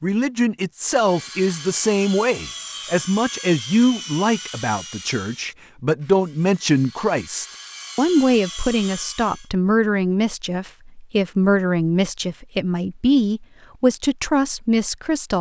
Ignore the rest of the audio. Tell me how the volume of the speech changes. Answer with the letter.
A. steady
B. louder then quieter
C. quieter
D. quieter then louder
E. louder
A.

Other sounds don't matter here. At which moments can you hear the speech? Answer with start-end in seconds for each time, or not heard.
0.0-15.3.